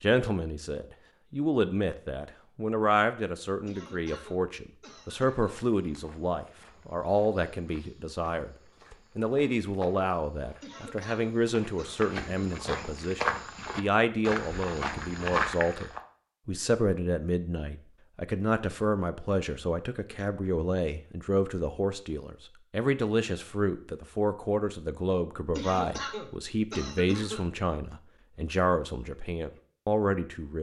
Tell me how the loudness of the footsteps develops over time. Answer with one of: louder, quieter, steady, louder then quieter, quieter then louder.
louder.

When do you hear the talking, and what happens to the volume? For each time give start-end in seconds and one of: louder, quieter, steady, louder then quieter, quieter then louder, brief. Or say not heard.
0.0-30.5 steady.